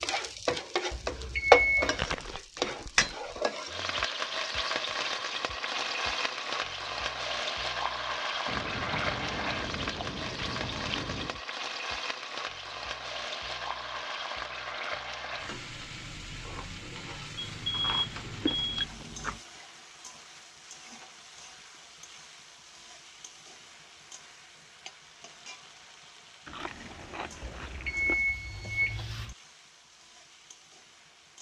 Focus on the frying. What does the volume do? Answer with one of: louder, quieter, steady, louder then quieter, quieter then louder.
quieter.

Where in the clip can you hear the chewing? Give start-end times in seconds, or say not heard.
1.9-3.4, 8.4-11.3, 17.7-19.4, 26.4-28.2.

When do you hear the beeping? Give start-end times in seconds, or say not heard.
0.9-2.0, 17.4-18.9, 27.4-29.4.